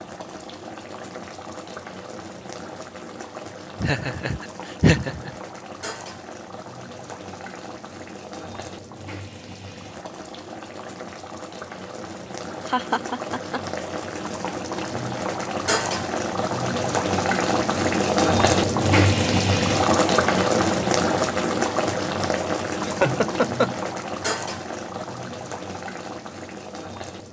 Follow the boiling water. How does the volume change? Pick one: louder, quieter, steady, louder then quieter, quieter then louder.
louder then quieter.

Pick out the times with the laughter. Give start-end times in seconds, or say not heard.
3.8-5.3, 12.7-13.6, 22.8-23.8.